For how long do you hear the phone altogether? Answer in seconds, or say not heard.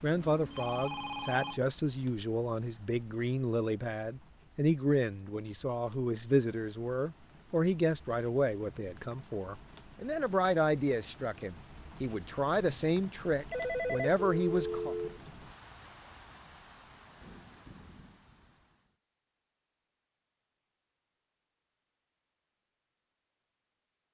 3 s.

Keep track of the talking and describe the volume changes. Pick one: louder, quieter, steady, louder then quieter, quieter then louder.
steady.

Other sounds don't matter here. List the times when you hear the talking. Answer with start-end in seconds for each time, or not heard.
0.0-14.9.